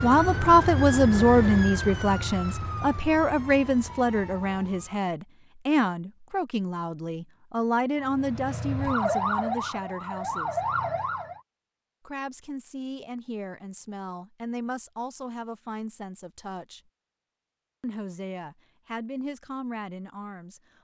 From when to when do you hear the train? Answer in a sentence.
You can't hear the train here.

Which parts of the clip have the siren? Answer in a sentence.
You can hear the siren from 0.0 to 5.1 s and from 8.0 to 11.4 s.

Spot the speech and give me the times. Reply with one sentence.
You can hear the speech from 0.0 to 10.6 s, from 12.1 to 16.8 s and from 17.8 to 20.6 s.